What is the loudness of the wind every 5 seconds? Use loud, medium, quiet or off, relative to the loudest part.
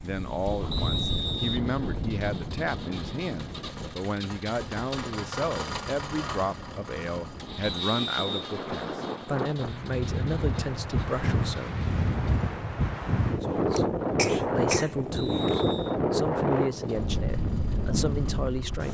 medium, medium, loud, loud.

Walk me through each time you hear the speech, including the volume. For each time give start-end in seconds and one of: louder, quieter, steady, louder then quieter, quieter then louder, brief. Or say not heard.
0.0-11.8 steady
13.4-18.9 steady.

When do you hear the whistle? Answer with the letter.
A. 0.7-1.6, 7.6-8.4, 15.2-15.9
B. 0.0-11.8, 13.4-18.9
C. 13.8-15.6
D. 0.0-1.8
A.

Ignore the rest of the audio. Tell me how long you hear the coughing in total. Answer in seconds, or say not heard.
2 s.